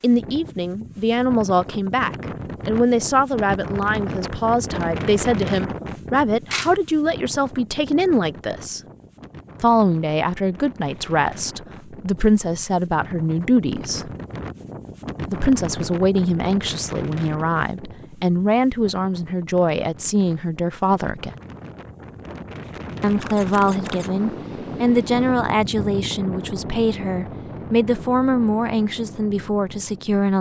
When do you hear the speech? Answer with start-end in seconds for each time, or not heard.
0.0-8.8, 9.6-14.1, 15.2-21.4, 23.0-30.3.